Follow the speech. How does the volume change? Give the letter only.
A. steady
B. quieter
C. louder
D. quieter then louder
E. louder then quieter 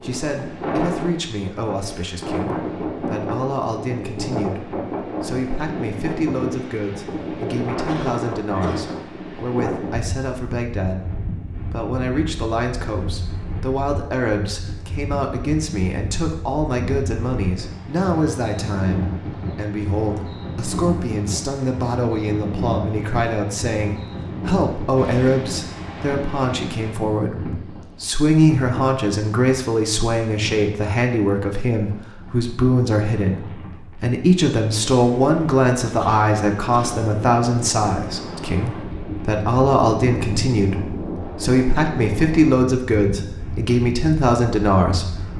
C.